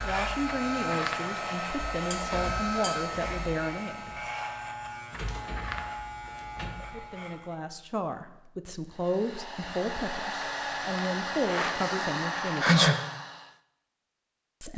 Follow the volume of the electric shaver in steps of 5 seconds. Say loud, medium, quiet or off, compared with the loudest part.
loud, loud, off.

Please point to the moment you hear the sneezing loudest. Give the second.
13 s.